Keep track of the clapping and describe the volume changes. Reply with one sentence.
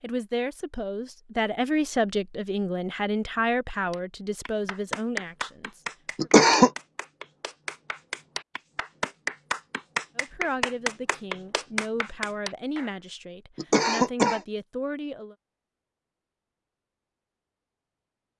The volume of the clapping goes down, then up.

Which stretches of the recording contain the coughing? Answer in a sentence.
You can hear the coughing from 6.2 to 6.7 s and from 13.6 to 14.4 s.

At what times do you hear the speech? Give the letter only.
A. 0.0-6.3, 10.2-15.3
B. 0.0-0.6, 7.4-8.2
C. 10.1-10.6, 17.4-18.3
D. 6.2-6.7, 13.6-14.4
A.